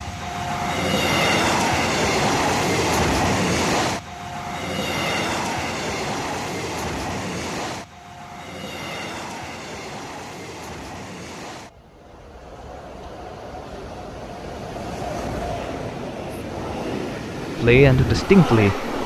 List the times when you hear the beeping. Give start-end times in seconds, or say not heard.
not heard.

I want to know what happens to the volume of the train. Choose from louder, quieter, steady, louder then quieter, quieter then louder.
quieter then louder.